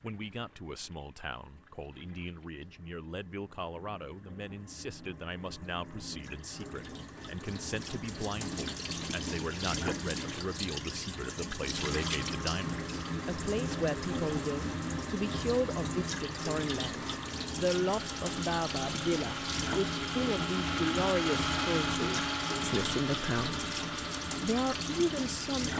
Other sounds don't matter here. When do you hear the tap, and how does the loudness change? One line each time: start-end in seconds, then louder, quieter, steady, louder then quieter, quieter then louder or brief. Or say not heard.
0.0-25.7 louder.